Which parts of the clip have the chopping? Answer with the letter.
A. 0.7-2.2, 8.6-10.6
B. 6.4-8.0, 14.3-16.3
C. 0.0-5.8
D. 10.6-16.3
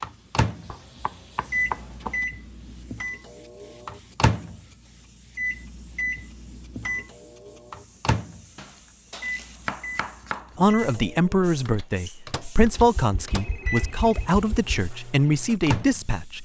A.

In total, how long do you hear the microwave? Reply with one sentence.
The microwave can be heard for 16 seconds in total.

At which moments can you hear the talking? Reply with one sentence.
You can hear the talking from 10.6 to 16.3 s.